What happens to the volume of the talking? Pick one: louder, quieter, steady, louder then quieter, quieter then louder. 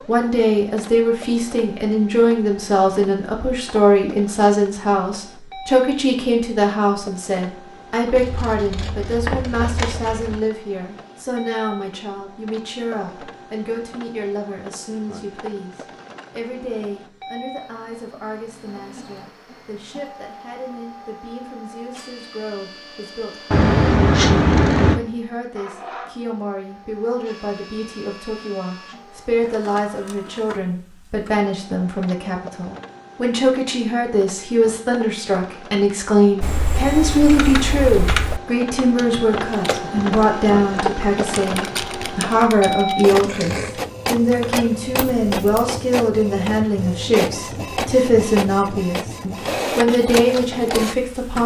quieter then louder.